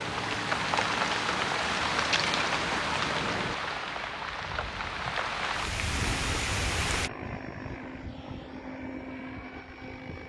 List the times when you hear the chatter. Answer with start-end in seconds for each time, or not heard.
not heard.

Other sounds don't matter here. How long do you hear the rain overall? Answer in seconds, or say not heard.
7 s.